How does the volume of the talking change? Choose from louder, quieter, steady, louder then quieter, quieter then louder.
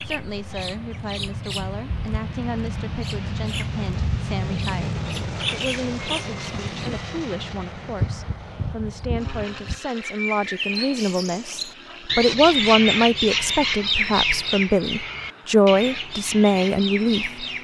louder.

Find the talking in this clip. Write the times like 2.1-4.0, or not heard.
0.0-17.4.